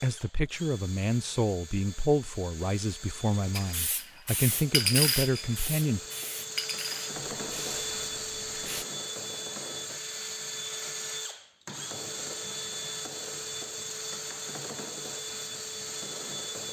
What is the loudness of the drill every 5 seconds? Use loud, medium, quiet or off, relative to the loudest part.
medium, loud, loud, loud.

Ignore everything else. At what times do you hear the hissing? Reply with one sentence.
You can hear the hissing from 3.5 to 8.8 s.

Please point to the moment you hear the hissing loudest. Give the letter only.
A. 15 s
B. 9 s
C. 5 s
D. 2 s
C.